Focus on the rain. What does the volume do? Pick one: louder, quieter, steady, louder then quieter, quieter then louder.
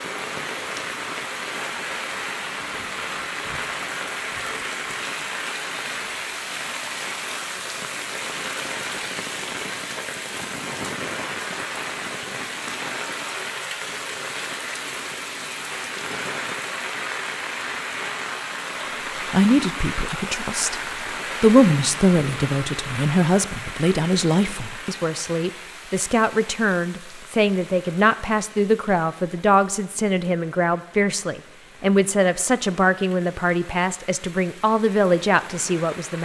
quieter.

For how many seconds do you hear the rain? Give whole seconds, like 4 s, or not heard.
36 s.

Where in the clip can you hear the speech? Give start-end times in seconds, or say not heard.
19.3-20.8, 21.4-36.2.